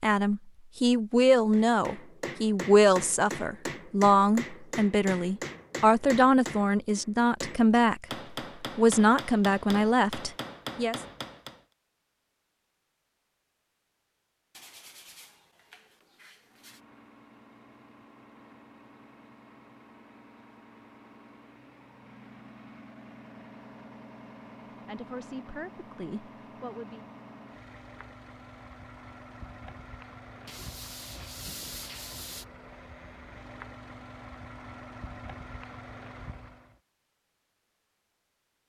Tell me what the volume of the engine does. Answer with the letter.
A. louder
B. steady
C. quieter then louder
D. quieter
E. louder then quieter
A.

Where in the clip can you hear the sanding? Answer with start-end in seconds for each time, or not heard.
14.5-16.8, 30.4-32.5.